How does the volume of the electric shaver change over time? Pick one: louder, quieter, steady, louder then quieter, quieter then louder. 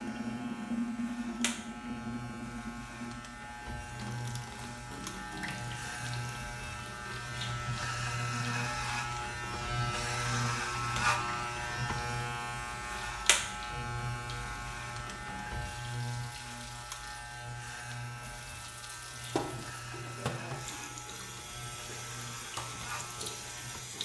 louder then quieter.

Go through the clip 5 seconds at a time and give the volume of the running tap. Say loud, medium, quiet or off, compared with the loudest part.
loud, medium, medium, medium, loud.